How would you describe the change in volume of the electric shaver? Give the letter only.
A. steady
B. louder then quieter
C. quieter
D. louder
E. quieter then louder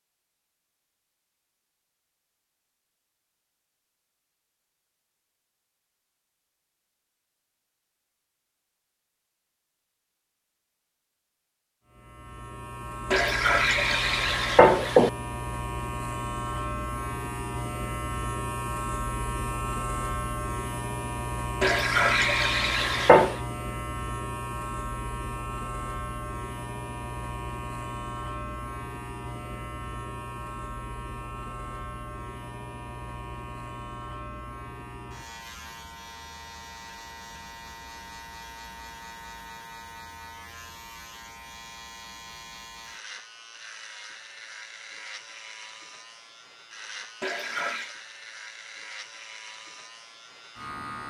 C.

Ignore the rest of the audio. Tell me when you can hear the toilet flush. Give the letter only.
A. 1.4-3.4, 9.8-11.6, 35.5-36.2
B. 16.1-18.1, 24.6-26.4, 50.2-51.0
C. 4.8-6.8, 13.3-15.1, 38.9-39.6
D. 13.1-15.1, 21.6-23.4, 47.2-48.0
D.